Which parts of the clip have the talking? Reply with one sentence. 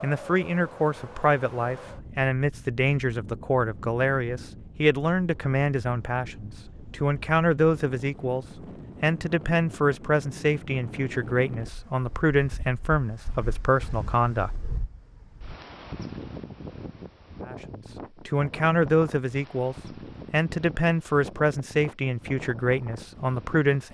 The talking can be heard from 0.0 to 14.6 s and from 17.4 to 23.8 s.